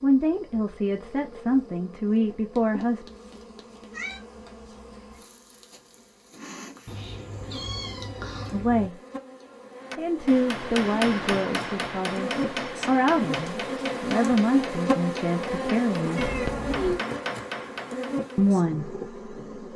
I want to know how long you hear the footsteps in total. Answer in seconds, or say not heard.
not heard.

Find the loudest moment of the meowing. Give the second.
17 s.